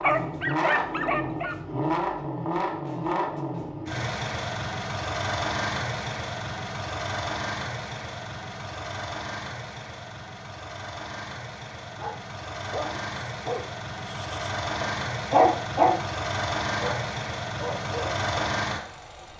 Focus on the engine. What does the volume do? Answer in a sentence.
The volume of the engine goes down, then up.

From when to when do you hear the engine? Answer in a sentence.
You can hear the engine from 0.0 to 19.3 s.